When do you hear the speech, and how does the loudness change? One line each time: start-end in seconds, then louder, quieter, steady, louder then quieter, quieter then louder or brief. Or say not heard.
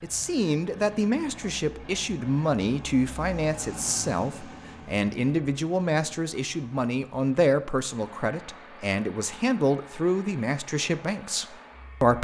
0.0-12.1 steady.